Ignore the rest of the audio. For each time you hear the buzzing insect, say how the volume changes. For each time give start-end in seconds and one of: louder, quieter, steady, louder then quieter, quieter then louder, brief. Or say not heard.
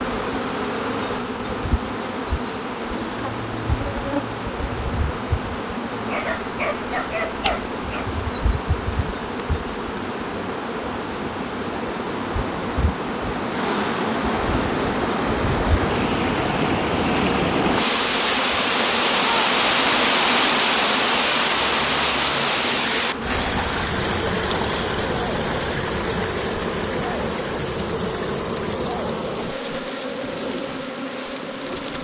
0.0-32.0 steady.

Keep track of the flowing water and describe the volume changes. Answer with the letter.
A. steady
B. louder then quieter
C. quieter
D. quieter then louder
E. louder
B.